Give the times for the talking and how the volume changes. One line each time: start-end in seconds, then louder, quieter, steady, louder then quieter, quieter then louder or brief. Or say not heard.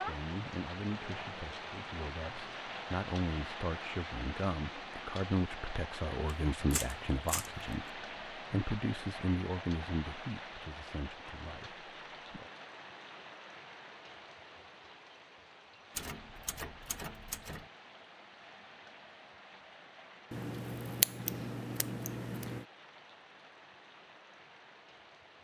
0.0-7.8 louder
8.5-12.5 quieter.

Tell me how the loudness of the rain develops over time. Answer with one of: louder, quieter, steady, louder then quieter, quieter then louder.
quieter.